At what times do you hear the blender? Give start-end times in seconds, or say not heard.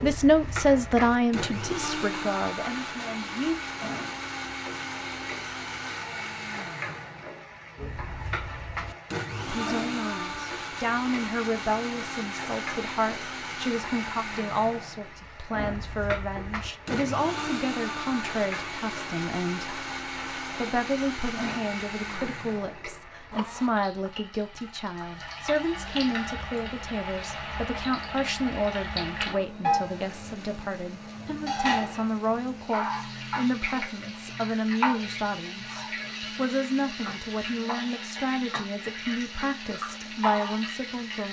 0.0-23.7, 25.8-41.0.